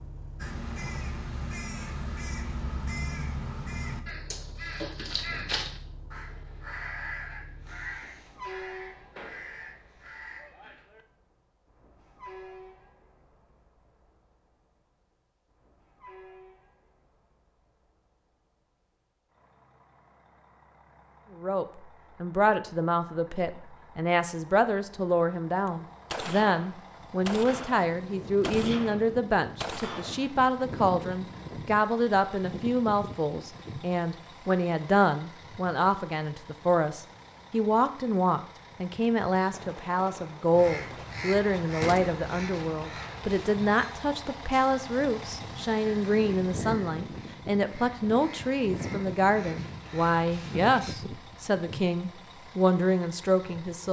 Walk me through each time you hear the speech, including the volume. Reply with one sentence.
You can hear the speech from 21.4 to 53.8 s, at a steady volume.